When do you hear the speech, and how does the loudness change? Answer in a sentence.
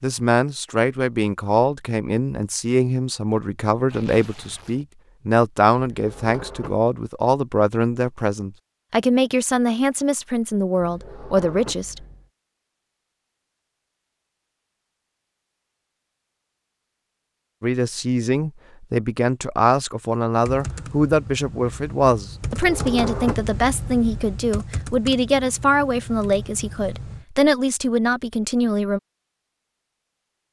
You can hear the speech from 0.0 to 12.0 s, at a steady volume; and from 17.6 to 29.0 s, at a steady volume.